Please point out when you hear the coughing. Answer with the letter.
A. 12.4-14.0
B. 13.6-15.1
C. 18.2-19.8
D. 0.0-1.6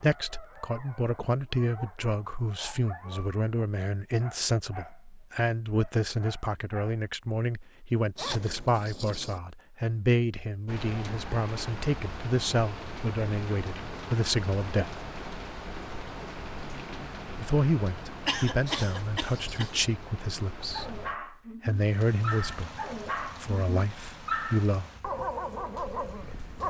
C.